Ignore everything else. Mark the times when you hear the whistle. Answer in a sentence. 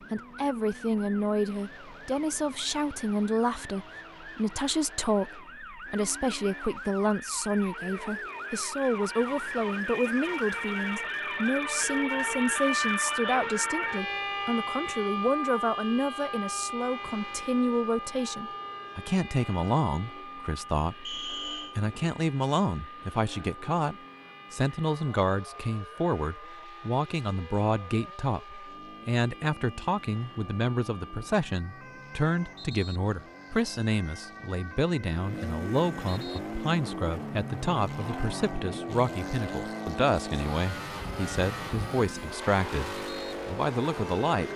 You can hear the whistle from 21.1 to 21.8 s.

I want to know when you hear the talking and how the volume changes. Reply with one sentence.
You can hear the talking from 0.1 to 44.5 s, at a steady volume.